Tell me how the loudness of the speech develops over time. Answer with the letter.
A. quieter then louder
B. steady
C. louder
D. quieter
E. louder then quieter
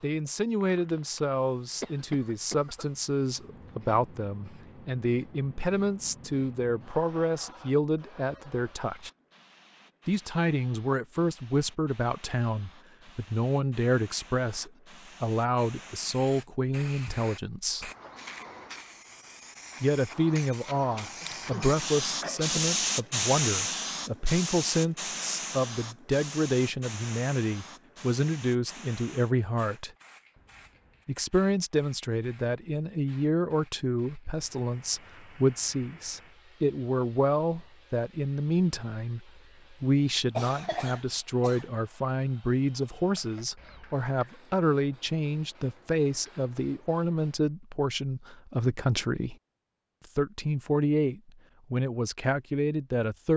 B.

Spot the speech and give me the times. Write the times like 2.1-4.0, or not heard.
0.0-9.1, 10.1-17.9, 19.8-29.9, 31.1-49.4, 50.0-53.3.